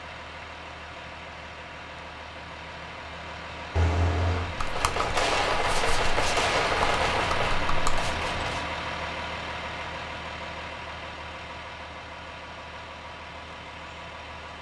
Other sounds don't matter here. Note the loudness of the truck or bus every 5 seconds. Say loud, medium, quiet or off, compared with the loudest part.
medium, loud, medium.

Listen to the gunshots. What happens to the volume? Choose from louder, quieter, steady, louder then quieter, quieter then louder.
louder then quieter.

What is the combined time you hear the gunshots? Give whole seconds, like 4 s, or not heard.
5 s.